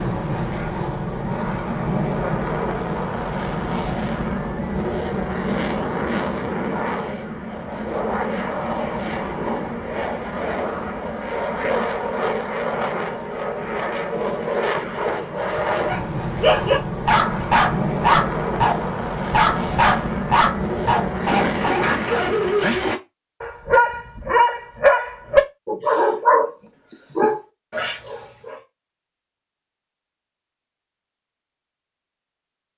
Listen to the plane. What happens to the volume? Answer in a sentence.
The volume of the plane stays about the same.